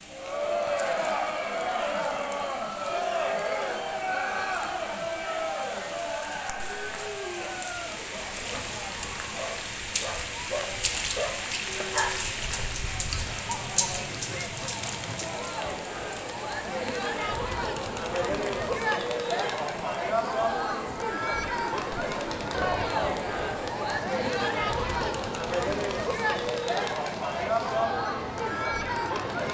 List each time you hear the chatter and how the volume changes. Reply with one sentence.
You can hear the chatter from 0.1 to 29.4 s, getting quieter then louder.